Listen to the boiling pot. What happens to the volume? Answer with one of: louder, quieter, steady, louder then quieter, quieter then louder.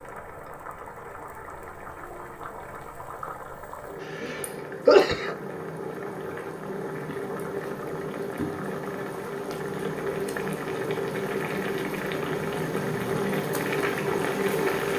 louder.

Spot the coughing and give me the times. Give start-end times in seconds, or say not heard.
4.0-5.3.